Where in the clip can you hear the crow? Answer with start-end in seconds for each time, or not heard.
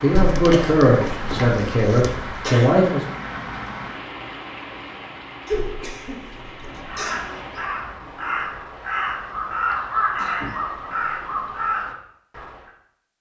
6.8-12.7.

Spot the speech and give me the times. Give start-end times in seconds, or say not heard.
0.0-3.0.